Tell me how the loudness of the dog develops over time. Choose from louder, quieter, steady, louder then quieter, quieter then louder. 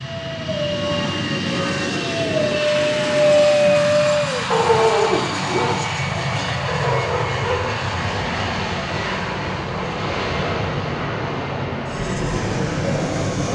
louder then quieter.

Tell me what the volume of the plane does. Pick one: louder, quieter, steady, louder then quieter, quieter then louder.
steady.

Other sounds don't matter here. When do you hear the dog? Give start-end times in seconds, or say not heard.
0.0-7.8.